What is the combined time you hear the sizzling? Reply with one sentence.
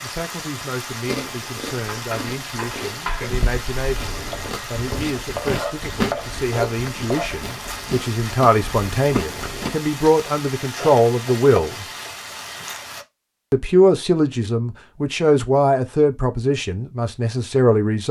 The sizzling can be heard for 13 seconds in total.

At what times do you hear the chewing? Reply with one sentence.
The chewing can be heard from 1.1 to 9.7 s.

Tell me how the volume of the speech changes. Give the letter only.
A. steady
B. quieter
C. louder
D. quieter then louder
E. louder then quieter
C.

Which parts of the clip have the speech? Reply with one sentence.
The speech can be heard from 0.0 to 11.8 s and from 13.5 to 18.0 s.